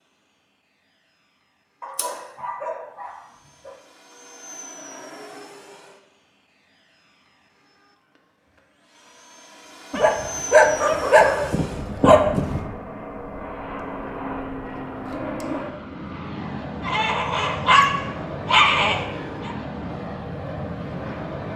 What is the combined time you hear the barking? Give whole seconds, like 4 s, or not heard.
7 s.